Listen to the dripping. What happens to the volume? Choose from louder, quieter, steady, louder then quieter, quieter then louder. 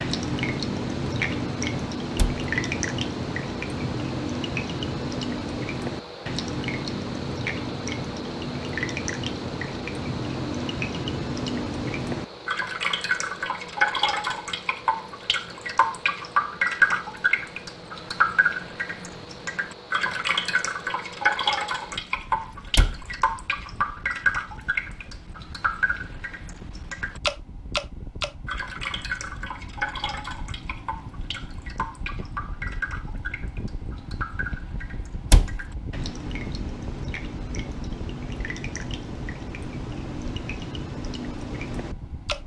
quieter.